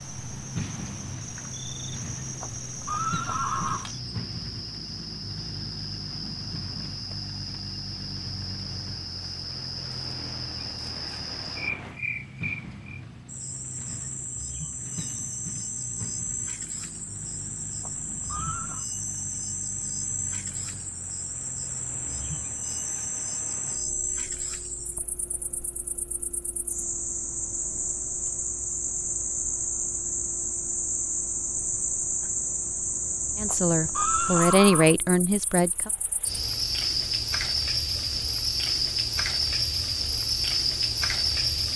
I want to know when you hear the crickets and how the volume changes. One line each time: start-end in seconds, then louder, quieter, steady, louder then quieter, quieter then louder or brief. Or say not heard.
0.0-41.7 louder.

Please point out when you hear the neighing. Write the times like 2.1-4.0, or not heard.
2.4-3.9, 17.8-18.9, 33.5-35.0.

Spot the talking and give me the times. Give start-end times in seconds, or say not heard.
33.4-35.9.